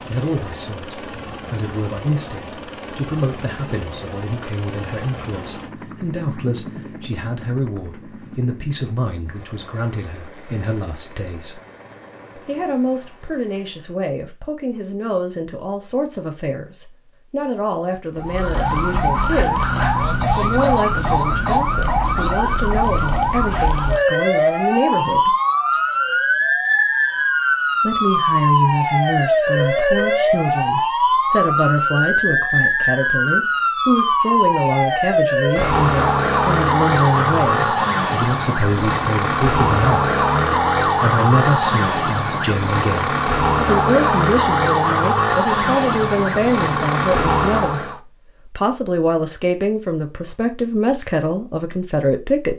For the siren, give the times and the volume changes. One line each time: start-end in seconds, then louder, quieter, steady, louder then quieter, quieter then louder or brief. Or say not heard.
18.1-48.0 steady.